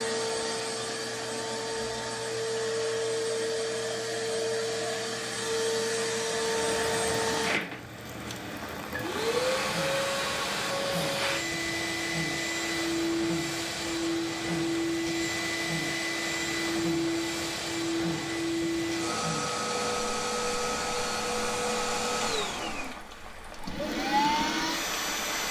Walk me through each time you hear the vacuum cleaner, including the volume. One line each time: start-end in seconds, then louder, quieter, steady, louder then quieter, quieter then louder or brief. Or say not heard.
0.0-25.4 steady.